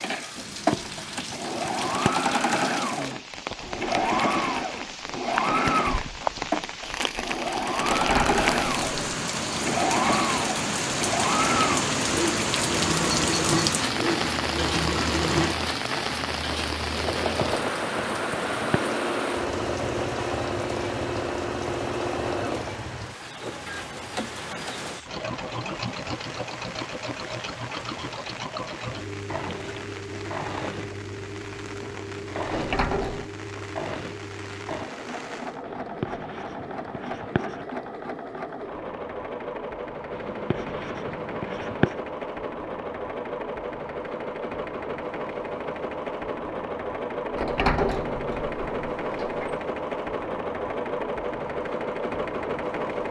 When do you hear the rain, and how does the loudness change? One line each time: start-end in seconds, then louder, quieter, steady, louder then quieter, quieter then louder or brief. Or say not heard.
0.0-35.6 louder then quieter.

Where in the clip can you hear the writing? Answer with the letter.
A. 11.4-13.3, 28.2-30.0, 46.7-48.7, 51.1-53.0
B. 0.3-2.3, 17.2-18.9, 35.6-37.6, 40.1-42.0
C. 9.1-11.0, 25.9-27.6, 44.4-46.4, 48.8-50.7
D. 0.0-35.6
B.